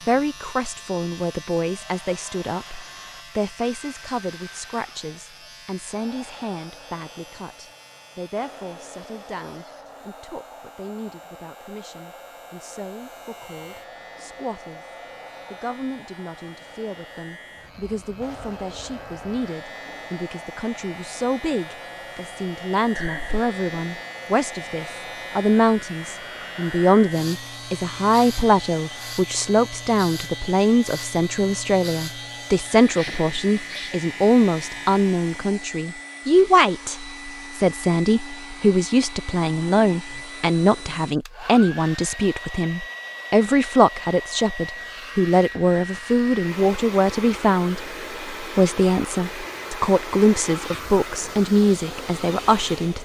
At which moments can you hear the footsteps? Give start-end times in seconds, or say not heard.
not heard.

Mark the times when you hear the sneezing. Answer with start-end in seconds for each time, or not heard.
22.9-23.4, 33.0-34.0.